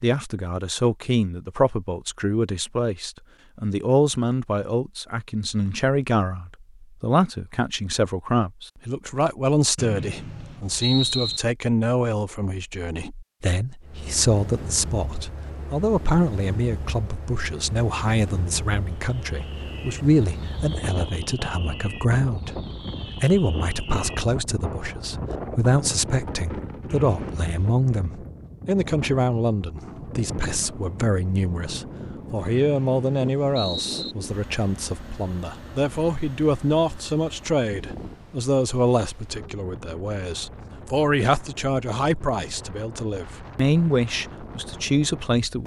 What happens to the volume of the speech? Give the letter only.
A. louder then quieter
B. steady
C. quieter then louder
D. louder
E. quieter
B.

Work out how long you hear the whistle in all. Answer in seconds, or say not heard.
4 s.